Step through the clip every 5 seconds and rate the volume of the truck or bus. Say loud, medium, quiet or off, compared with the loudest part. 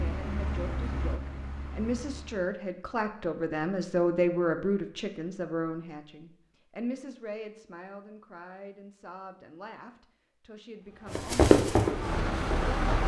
medium, off, loud.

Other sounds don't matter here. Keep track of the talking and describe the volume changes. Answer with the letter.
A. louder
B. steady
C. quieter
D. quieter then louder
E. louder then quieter
E.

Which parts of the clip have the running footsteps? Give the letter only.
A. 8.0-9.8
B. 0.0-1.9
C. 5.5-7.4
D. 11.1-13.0
D.